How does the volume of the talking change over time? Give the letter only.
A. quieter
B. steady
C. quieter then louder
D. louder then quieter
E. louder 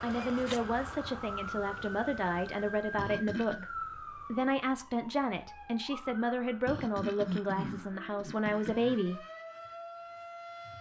B.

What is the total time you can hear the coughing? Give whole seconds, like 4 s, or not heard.
3 s.